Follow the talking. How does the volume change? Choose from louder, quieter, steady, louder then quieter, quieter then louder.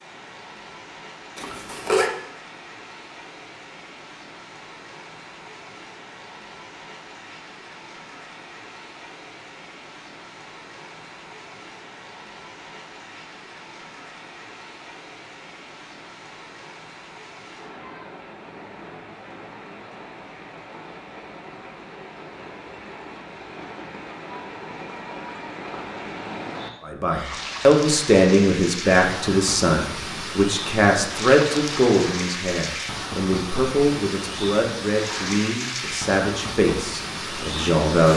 quieter.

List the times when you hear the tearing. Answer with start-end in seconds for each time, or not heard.
not heard.